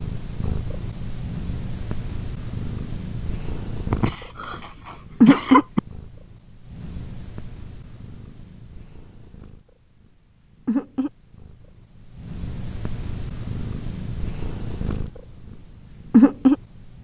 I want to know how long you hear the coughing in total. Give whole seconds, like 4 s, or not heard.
2 s.